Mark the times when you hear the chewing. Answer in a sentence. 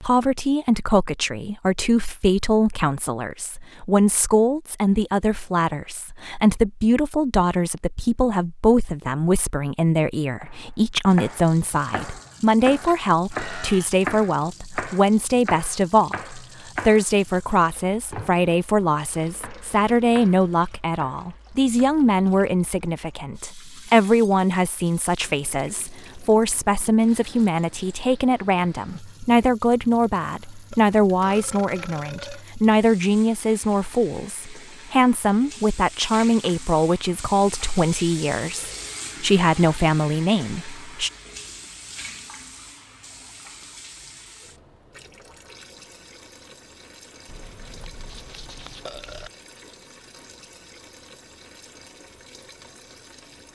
The chewing can't be heard in this clip.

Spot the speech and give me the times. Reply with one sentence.
The speech can be heard from 0.0 to 41.1 s.